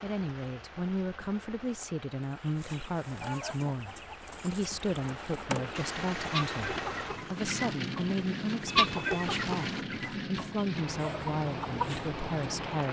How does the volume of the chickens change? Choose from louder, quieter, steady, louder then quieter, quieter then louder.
louder then quieter.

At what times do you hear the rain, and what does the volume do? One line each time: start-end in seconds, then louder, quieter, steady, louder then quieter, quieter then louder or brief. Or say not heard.
0.0-12.8 louder.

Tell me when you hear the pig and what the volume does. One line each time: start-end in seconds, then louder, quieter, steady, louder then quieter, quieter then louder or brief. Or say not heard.
not heard.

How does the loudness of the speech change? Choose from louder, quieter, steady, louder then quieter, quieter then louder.
steady.